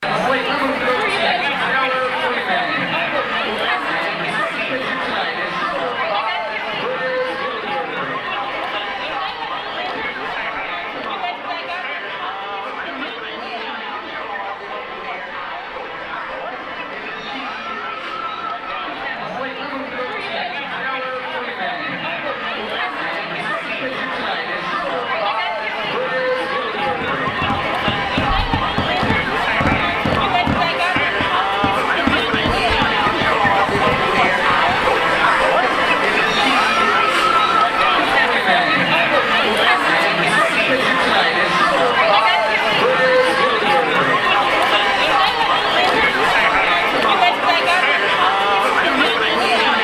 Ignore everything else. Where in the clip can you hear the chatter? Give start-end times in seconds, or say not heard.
0.0-49.7.